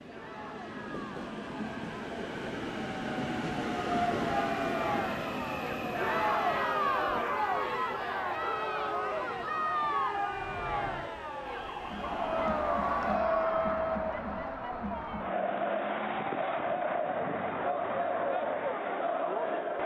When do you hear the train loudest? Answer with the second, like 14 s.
4 s.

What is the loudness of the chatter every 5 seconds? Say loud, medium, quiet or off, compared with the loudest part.
medium, loud, loud, loud.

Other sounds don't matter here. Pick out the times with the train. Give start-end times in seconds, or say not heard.
0.0-13.2.